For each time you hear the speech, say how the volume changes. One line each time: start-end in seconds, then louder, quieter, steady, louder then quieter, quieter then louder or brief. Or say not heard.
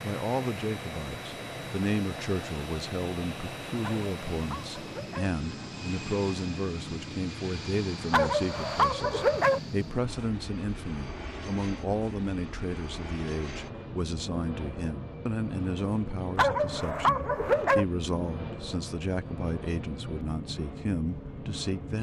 0.0-21.9 steady.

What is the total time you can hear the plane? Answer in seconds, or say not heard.
22 s.